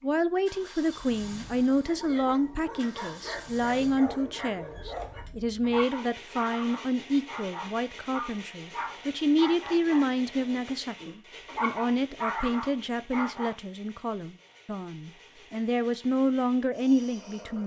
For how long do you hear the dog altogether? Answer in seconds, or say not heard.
12 s.